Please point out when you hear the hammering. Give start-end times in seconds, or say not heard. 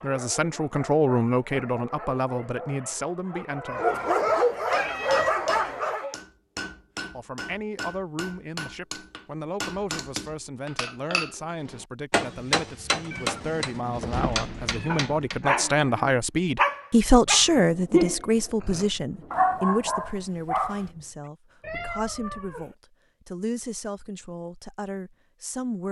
4.7-15.6.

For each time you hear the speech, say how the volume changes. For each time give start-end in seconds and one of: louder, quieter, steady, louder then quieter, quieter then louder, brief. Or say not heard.
0.0-4.0 quieter
7.2-25.8 louder then quieter.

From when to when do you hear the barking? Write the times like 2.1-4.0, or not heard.
0.0-6.2, 14.5-20.9.